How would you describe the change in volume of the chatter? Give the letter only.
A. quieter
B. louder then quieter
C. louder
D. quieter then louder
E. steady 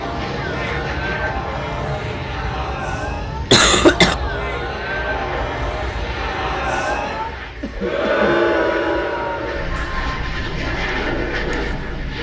B.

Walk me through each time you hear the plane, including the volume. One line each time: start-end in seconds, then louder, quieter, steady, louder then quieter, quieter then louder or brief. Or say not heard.
0.0-12.1 quieter then louder.